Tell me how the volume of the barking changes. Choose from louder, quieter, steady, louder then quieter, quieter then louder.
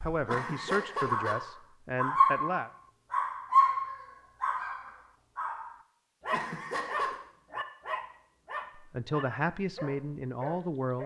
quieter.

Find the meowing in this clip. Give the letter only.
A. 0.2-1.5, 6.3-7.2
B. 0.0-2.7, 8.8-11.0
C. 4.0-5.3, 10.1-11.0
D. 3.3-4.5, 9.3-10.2
A.